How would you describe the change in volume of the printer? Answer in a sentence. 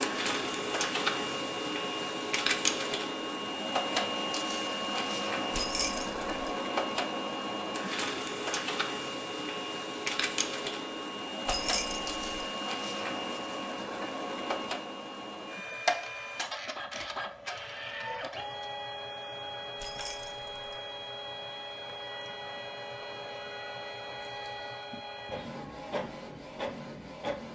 The loudness of the printer goes down.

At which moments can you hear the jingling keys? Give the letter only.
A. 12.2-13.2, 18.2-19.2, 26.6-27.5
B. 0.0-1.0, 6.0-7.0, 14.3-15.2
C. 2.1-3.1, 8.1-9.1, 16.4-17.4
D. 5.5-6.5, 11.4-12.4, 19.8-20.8
D.